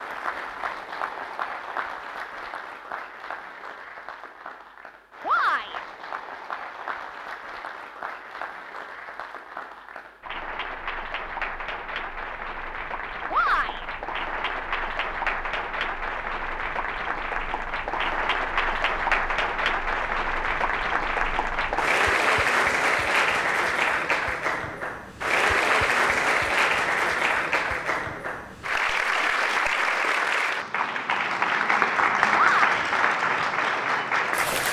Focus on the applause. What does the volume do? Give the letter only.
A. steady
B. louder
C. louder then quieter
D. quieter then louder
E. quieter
B.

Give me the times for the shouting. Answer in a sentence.
The shouting can be heard from 5.2 to 5.8 s, from 13.3 to 13.8 s and from 32.3 to 32.8 s.